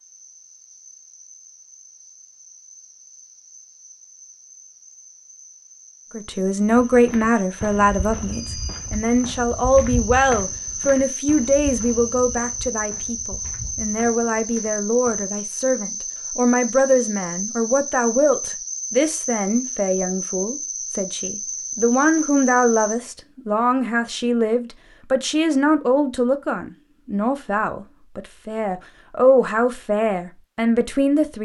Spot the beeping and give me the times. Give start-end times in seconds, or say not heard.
8.3-9.0.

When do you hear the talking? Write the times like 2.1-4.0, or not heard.
6.1-31.4.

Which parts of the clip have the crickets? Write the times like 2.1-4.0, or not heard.
0.0-23.0.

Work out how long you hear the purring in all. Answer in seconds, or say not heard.
not heard.